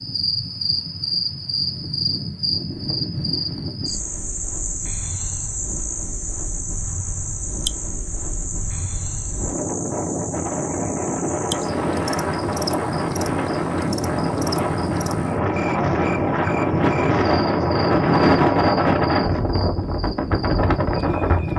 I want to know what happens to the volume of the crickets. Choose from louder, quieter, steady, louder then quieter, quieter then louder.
quieter.